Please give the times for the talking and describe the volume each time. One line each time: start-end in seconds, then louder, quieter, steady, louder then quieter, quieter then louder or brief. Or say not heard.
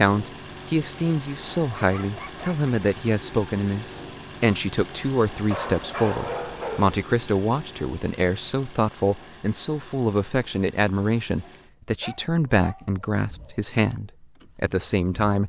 0.0-15.4 steady.